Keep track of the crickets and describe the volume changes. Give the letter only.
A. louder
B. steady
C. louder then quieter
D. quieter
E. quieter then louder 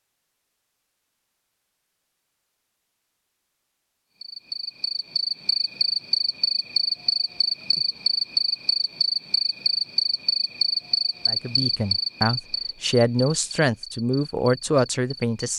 D.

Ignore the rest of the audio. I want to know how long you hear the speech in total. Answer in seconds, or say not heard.
4 s.